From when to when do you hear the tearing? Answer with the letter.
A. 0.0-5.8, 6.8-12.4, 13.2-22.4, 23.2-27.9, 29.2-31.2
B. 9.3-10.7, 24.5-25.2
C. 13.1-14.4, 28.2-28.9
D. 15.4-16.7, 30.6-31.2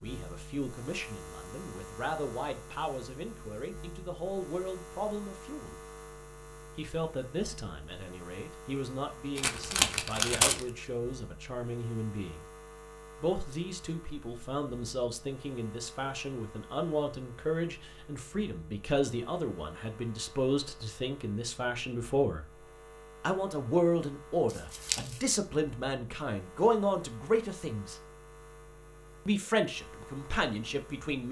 B.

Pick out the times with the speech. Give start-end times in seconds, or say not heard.
0.0-5.8, 6.8-12.4, 13.2-22.4, 23.2-27.9, 29.2-31.2.